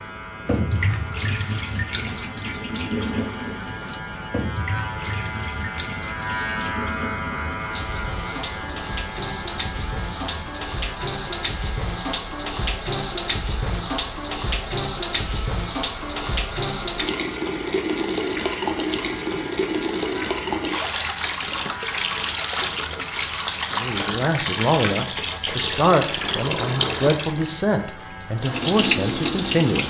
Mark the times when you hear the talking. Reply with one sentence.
You can hear the talking from 23.8 to 29.8 s.